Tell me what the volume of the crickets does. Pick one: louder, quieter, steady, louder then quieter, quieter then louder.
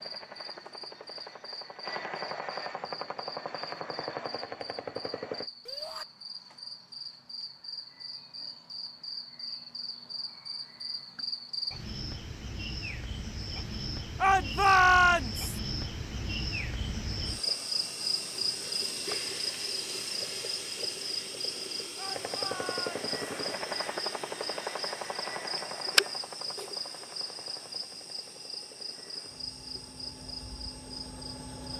louder.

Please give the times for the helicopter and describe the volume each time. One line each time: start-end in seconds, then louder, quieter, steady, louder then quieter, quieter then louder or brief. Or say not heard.
0.0-5.5 louder
22.1-31.7 quieter then louder.